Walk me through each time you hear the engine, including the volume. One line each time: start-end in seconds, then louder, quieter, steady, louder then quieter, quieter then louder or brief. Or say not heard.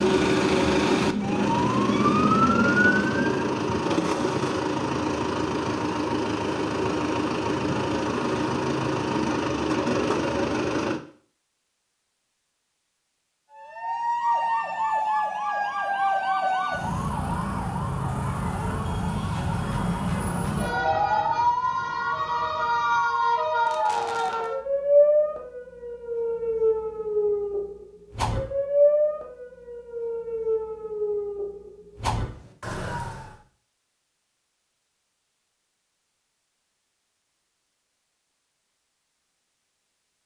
0.0-11.0 steady.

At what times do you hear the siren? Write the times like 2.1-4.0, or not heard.
0.0-3.4, 13.6-33.4.